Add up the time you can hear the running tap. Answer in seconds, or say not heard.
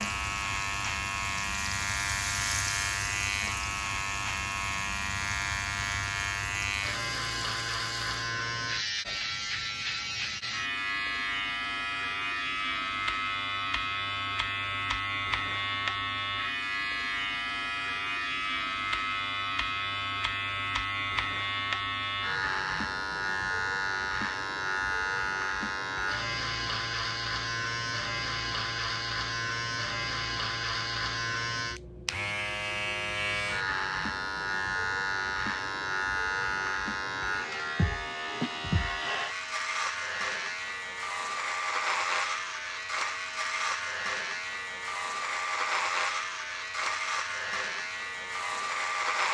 8 s.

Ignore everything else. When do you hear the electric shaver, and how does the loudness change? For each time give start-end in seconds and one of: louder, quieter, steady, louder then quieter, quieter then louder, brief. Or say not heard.
0.0-49.2 steady.